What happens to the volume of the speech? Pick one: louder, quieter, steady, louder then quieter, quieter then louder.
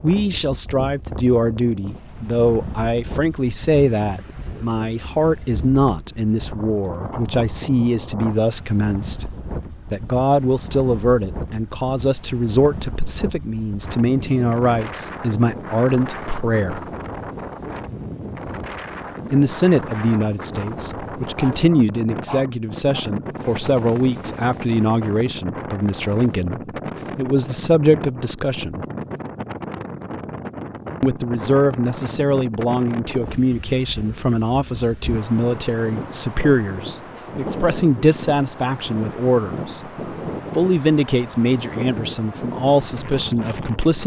steady.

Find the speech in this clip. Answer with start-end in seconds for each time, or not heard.
0.0-16.8, 19.3-28.9, 31.0-39.8, 40.5-44.0.